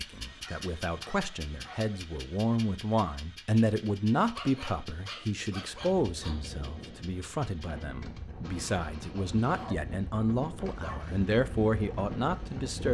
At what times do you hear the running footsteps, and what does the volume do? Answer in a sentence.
The running footsteps can't be heard in this clip.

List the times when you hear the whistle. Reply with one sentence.
You can't hear the whistle here.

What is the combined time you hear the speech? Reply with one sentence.
You can hear the speech for 13 seconds altogether.